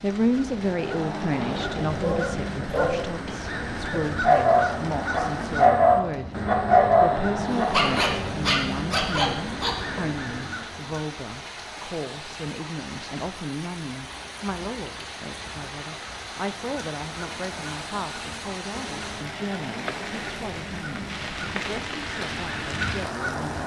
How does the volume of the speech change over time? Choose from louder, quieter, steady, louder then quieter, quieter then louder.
quieter.